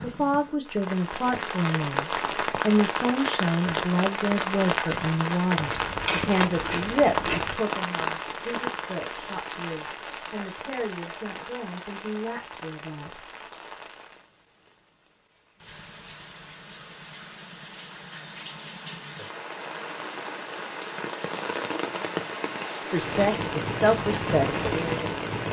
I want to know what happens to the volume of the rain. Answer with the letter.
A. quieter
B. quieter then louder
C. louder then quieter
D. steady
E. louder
B.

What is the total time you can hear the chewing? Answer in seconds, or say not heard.
2 s.